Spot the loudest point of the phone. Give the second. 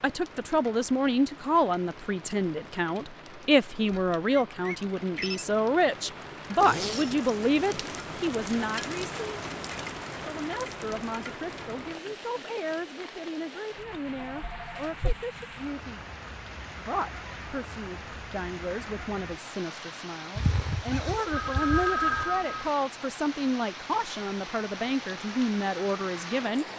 22 s.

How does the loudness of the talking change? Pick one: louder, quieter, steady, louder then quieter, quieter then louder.
quieter then louder.